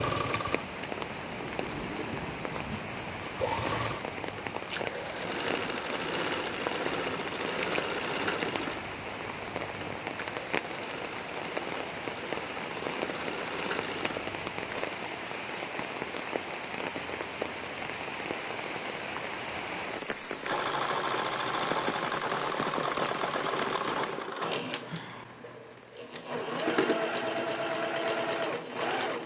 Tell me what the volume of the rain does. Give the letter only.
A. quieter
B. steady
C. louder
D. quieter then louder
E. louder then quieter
B.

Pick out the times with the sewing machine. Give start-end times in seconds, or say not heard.
0.0-14.8, 20.4-29.2.